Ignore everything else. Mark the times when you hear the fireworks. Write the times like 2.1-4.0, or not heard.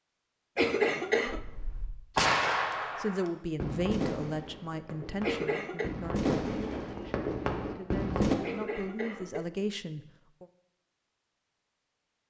1.2-8.3.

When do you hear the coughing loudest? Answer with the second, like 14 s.
1 s.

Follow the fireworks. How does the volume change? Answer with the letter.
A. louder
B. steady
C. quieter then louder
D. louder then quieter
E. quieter
C.